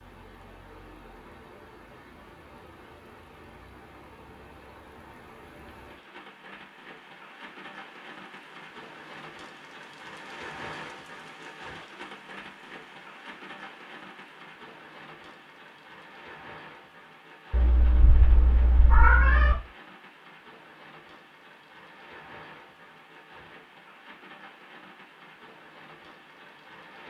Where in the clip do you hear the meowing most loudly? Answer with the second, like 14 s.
19 s.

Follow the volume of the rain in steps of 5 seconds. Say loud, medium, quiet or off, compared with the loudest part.
medium, loud, loud, medium, medium, medium.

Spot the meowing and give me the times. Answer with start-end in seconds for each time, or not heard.
17.5-19.6.